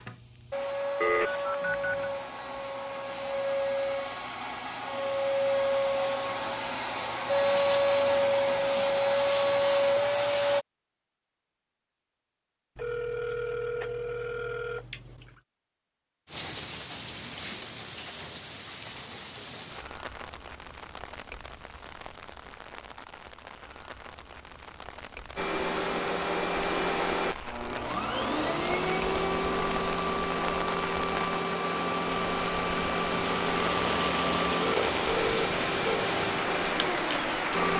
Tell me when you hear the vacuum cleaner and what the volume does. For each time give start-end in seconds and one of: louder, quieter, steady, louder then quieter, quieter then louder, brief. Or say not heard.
0.0-10.7 louder
25.4-37.7 steady.